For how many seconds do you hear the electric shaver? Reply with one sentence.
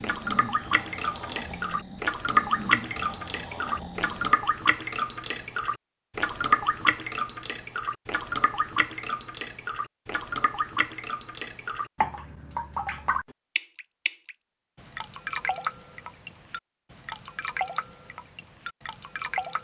You can't hear the electric shaver here.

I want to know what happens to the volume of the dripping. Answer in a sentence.
The volume of the dripping goes down.